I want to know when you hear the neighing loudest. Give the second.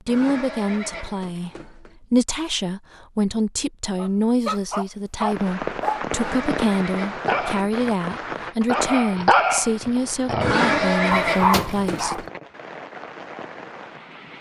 11 s.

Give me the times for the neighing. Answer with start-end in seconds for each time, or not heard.
0.1-1.9, 6.1-7.8, 10.4-12.3.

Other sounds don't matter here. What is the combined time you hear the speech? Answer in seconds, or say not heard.
12 s.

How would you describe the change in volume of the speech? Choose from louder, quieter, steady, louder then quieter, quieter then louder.
steady.